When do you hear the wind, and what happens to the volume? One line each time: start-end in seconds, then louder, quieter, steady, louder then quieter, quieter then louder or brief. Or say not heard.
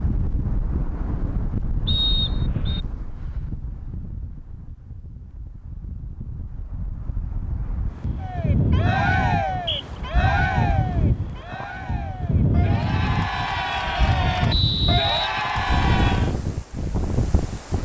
0.0-17.8 quieter then louder.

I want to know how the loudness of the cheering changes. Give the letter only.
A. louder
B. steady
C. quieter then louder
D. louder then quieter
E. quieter
C.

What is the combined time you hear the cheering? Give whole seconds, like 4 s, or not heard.
8 s.